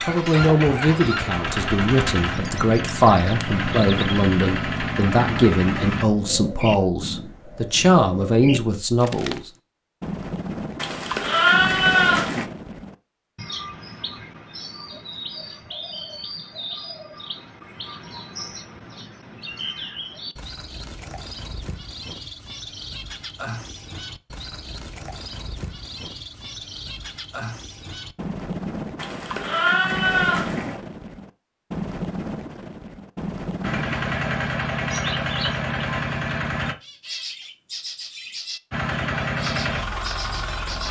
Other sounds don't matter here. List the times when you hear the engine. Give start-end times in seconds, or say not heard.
0.0-6.0, 33.6-36.8, 38.7-40.8.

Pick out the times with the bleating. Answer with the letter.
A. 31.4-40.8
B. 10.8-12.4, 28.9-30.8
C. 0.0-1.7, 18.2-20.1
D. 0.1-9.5
B.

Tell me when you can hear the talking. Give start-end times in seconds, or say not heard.
0.1-9.5.